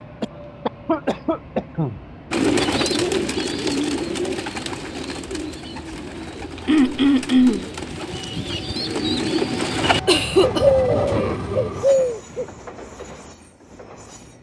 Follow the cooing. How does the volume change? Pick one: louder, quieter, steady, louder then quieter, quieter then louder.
quieter then louder.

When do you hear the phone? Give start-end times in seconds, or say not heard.
not heard.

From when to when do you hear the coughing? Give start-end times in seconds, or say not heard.
0.2-2.0, 6.7-7.7, 10.1-10.7.